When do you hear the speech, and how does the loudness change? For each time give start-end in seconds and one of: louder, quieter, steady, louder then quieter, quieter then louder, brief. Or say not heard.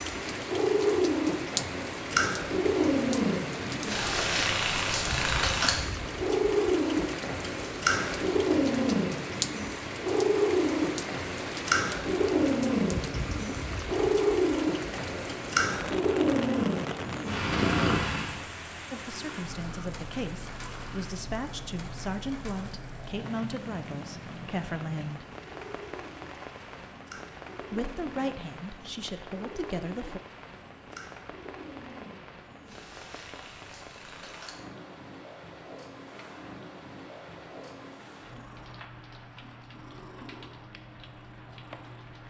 18.9-25.2 steady
27.7-30.2 brief.